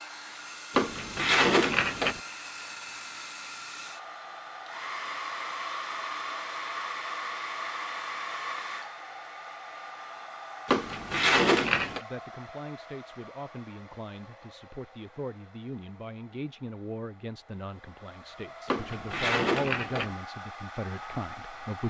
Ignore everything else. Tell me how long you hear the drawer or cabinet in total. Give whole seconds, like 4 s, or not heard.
4 s.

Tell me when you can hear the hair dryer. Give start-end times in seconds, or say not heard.
0.0-21.8.